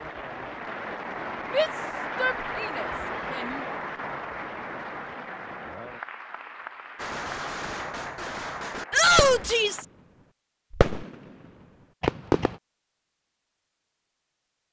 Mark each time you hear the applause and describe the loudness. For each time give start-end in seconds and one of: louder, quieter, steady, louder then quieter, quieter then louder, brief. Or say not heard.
0.0-9.8 quieter.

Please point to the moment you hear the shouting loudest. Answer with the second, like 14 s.
9 s.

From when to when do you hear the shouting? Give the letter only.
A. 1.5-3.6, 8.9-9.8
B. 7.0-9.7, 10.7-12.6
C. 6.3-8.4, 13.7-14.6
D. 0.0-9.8
A.